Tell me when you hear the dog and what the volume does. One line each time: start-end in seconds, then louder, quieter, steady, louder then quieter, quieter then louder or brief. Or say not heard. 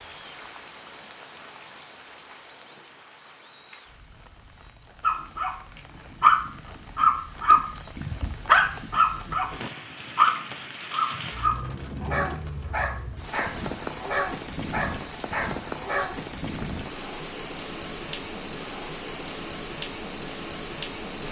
5.0-16.2 quieter.